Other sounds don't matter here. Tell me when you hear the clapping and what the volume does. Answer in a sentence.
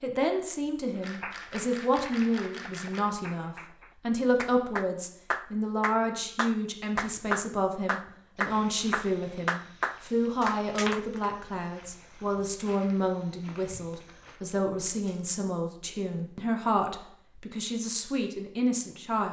You can hear the clapping from 1.0 to 11.2 s, getting louder.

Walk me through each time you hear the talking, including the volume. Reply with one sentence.
You can hear the talking from 0.0 to 19.2 s, at a steady volume.